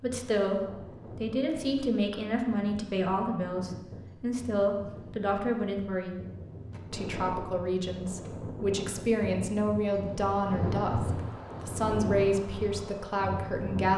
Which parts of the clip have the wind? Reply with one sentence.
The wind can be heard from 0.0 to 13.9 s.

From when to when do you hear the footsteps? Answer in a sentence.
The footsteps can't be heard in this clip.